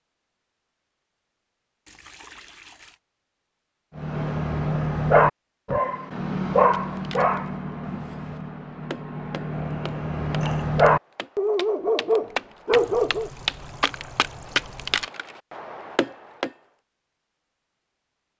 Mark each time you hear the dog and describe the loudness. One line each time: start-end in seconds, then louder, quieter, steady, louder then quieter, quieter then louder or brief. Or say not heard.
4.0-13.3 quieter then louder.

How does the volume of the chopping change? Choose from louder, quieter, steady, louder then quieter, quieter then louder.
louder then quieter.